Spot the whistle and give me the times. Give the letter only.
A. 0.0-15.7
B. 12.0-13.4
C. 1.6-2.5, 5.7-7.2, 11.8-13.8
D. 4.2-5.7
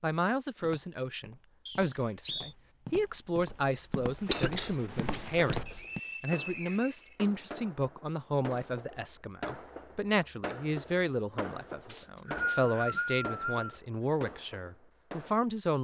C.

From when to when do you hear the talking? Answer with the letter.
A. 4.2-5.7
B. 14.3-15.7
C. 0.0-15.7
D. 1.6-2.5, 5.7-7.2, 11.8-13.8
C.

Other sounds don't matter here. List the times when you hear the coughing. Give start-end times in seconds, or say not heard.
4.2-5.7.